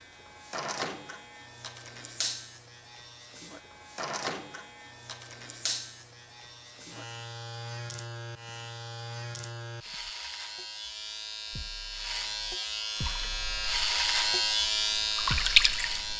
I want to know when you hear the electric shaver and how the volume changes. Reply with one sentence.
The electric shaver can be heard from 0.0 to 16.1 s, getting louder.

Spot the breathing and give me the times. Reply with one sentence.
The breathing can't be heard in this clip.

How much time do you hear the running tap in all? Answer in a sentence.
You can hear the running tap for 3 seconds altogether.